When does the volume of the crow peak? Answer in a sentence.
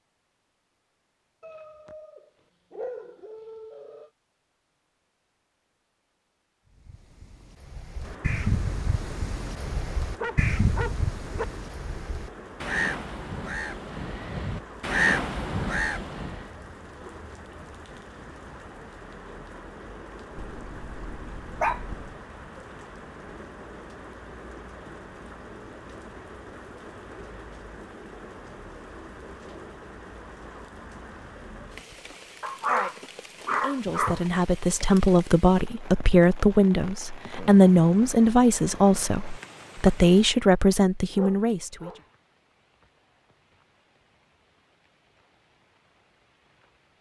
The volume of the crow peaks at 15 seconds.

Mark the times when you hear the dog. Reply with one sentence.
The dog can be heard from 1.4 to 4.1 s, from 10.2 to 11.4 s, from 20.4 to 22.1 s, from 32.4 to 34.2 s and from 41.1 to 42.0 s.